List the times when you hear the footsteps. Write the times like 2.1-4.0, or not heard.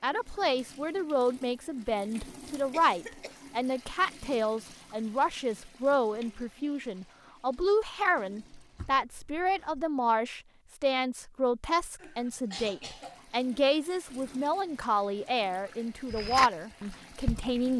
16.1-17.6.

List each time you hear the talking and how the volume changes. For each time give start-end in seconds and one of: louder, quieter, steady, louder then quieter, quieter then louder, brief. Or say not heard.
0.0-17.7 steady.